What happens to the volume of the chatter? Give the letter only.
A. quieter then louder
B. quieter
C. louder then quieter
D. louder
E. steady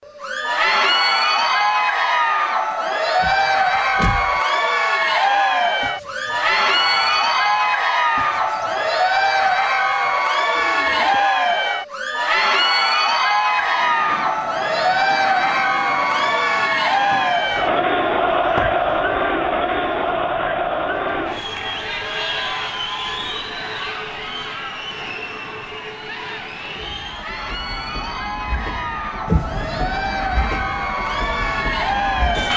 B.